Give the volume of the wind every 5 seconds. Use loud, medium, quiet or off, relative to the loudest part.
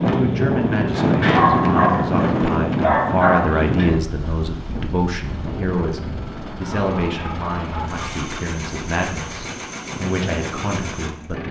loud, quiet, quiet.